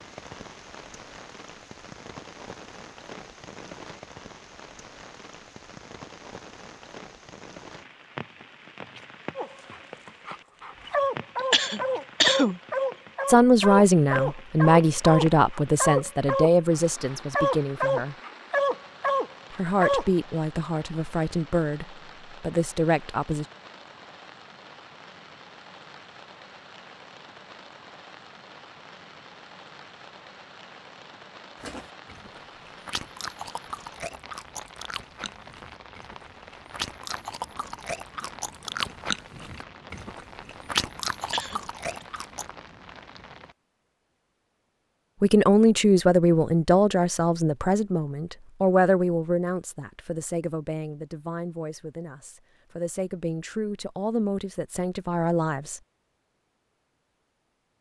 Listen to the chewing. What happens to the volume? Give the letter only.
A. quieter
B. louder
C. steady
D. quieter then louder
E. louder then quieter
B.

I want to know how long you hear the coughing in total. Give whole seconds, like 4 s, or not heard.
2 s.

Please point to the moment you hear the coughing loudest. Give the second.
12 s.